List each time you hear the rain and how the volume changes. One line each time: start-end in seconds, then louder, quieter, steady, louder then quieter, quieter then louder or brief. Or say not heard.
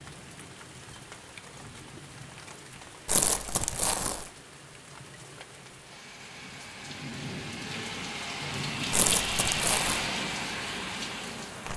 0.0-11.7 louder.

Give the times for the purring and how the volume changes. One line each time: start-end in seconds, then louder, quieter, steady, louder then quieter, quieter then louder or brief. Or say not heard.
not heard.